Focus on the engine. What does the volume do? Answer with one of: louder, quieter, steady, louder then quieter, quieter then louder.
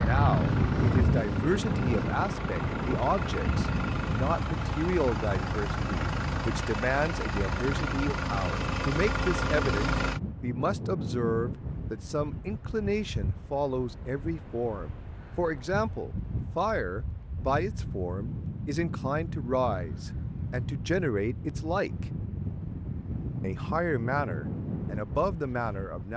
louder.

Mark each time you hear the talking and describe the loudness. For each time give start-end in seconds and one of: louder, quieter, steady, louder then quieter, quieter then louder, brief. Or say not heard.
0.0-22.1 steady
23.4-26.1 brief.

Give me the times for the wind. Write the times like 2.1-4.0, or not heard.
0.0-26.1.